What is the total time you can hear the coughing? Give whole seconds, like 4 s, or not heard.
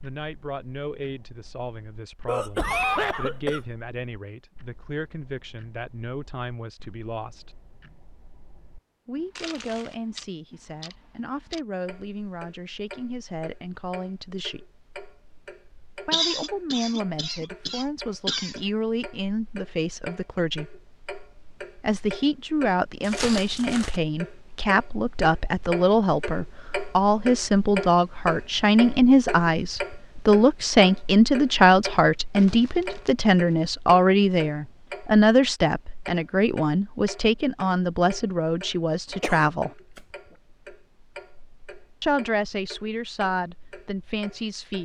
5 s.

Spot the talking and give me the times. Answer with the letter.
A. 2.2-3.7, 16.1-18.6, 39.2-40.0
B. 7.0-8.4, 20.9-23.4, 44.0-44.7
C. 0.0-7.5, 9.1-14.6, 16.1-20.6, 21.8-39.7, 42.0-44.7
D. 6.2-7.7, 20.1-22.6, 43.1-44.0
C.